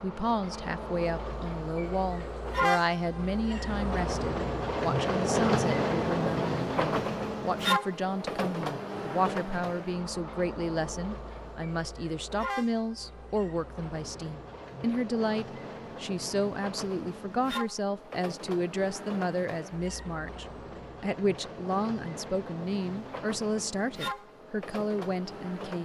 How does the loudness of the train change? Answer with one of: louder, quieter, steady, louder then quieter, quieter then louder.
quieter.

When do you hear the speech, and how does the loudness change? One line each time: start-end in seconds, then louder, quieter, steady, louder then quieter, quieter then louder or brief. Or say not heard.
0.0-25.8 steady.